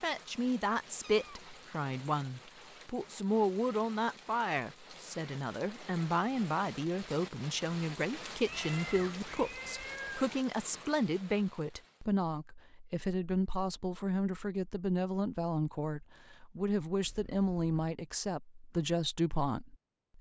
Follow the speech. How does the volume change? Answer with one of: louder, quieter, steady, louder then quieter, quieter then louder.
steady.